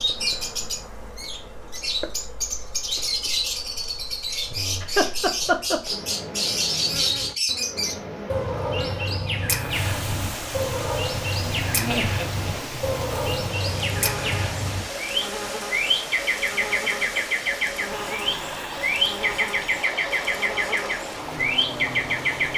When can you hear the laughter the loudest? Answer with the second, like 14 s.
5 s.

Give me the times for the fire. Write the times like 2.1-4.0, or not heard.
not heard.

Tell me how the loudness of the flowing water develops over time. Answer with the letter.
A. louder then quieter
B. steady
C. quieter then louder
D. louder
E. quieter
B.